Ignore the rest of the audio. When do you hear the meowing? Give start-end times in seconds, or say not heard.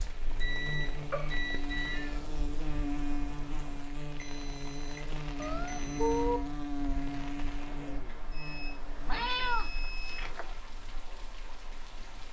1.1-2.2, 5.3-6.4, 9.1-10.6.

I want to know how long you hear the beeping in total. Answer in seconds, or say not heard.
6 s.